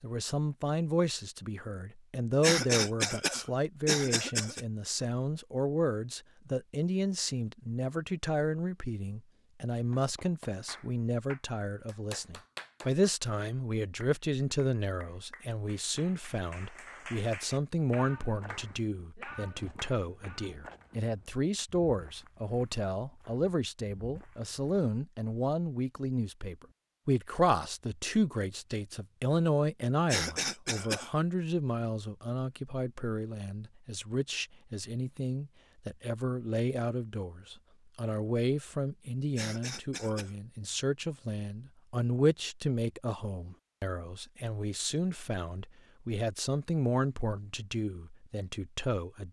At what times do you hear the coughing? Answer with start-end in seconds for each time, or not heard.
2.4-4.6, 30.1-31.1, 39.4-40.4.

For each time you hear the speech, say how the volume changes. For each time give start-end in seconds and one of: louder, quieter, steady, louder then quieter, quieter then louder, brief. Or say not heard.
0.0-49.2 steady.